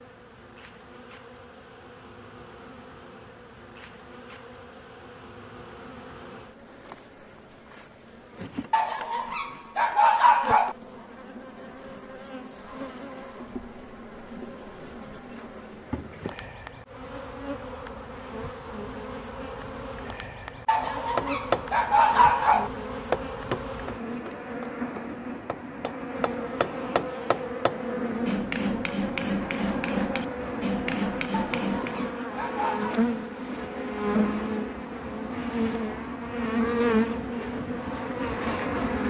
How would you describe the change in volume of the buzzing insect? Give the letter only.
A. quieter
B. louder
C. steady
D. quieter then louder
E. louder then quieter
B.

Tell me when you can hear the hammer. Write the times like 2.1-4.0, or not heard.
20.8-32.1.